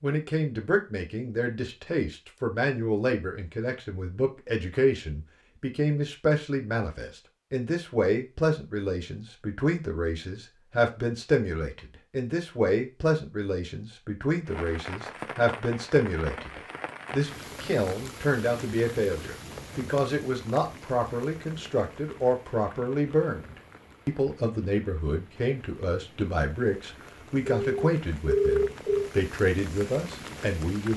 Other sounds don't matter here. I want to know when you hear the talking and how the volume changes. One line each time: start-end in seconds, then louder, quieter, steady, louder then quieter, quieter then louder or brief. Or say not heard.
0.0-30.9 steady.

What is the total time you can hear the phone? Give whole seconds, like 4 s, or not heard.
2 s.